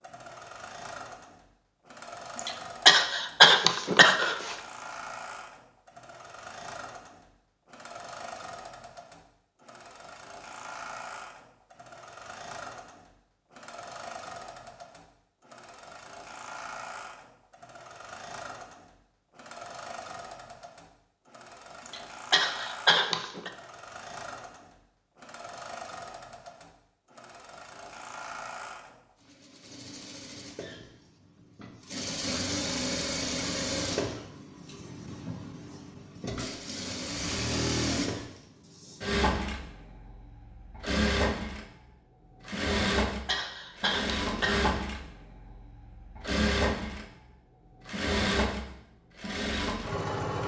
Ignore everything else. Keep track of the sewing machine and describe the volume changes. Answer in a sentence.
The volume of the sewing machine goes up.